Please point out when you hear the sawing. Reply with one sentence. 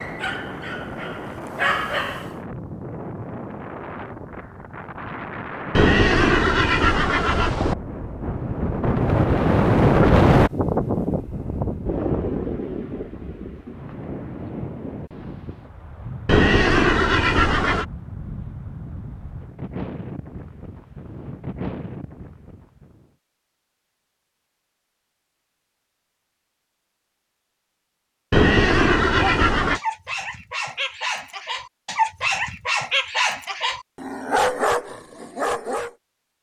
The sawing can't be heard in this clip.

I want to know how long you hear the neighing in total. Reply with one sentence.
You can hear the neighing for 5 seconds altogether.